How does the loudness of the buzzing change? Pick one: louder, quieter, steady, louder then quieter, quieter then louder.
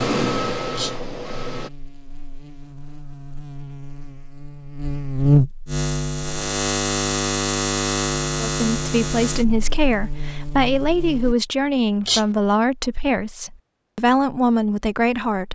louder then quieter.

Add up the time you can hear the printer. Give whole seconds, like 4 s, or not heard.
2 s.